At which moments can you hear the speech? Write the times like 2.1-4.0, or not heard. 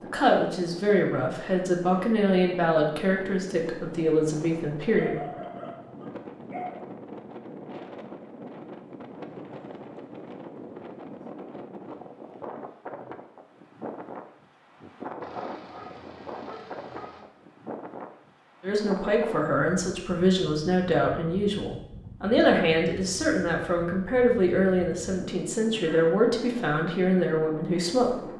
0.0-5.2, 18.6-28.2.